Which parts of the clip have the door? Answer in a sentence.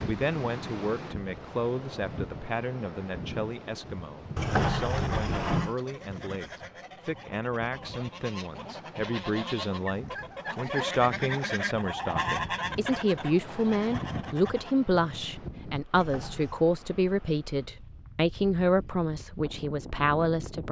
You can hear the door from 4.3 to 5.8 s and from 15.9 to 16.6 s.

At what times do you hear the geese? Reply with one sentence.
You can hear the geese from 4.5 to 14.8 s.